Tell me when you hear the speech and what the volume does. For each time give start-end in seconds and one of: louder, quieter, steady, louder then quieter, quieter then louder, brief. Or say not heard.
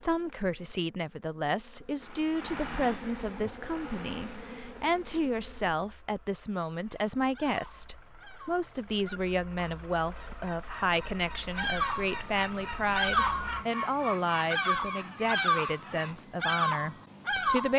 0.0-17.7 steady.